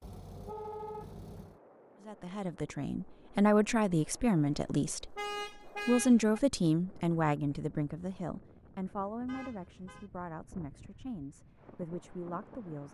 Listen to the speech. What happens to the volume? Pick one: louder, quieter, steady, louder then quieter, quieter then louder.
quieter.